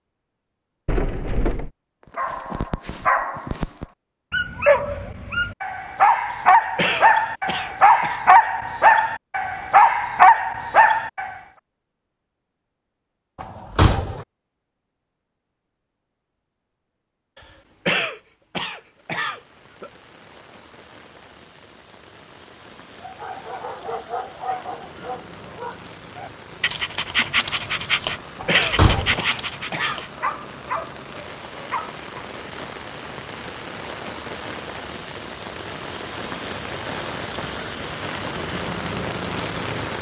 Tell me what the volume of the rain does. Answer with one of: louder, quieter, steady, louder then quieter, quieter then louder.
louder.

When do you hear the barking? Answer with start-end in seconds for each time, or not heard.
2.1-11.3, 23.0-32.0.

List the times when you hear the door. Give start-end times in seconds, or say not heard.
0.8-1.7, 13.4-14.2, 28.4-29.2.